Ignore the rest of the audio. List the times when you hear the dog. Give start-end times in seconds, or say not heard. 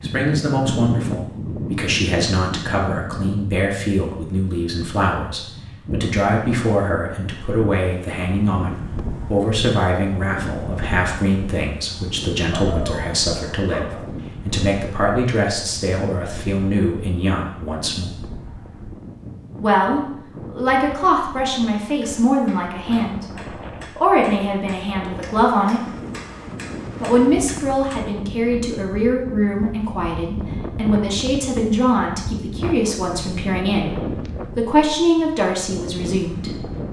12.5-14.1.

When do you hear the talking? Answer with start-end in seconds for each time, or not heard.
0.0-18.1, 19.6-25.9, 27.0-36.6.